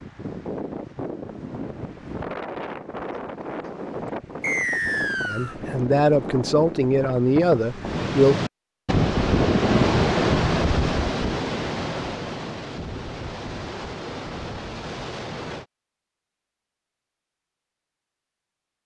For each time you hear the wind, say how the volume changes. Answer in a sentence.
You can hear the wind from 0.0 to 15.7 s, getting louder then quieter.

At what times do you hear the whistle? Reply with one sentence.
The whistle can be heard from 4.4 to 5.5 s.